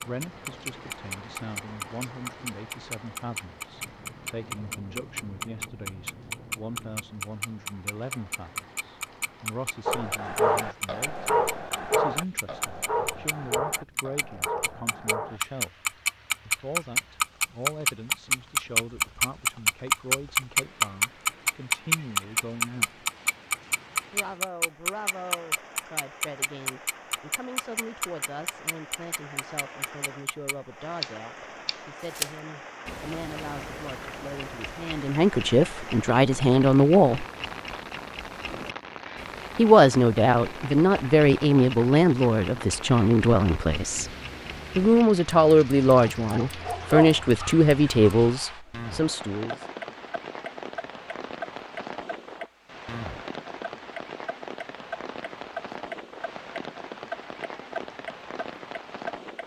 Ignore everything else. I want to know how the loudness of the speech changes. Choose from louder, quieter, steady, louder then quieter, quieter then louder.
louder.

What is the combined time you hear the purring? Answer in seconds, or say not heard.
not heard.